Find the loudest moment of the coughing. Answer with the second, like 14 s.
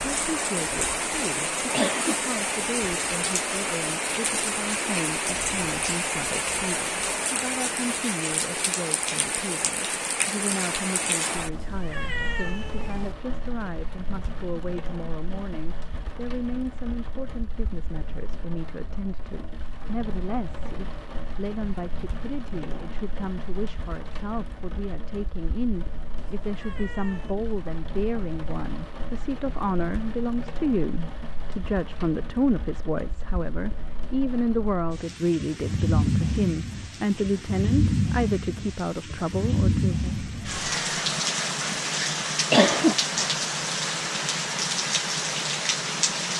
43 s.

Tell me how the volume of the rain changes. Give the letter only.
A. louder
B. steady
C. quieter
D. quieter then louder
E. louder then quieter
D.